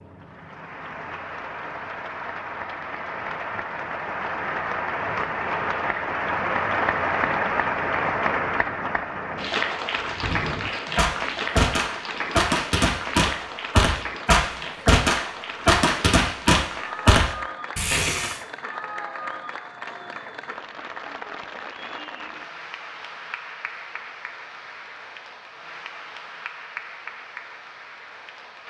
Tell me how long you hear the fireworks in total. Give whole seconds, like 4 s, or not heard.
8 s.